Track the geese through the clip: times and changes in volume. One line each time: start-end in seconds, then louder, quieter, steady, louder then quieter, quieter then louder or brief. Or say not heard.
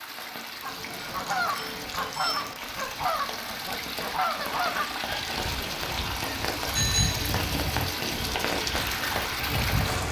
0.6-10.0 quieter.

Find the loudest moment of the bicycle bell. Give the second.
7 s.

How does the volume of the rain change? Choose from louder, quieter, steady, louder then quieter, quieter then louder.
louder.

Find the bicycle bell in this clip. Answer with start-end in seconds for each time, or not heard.
0.7-2.5, 6.7-7.2.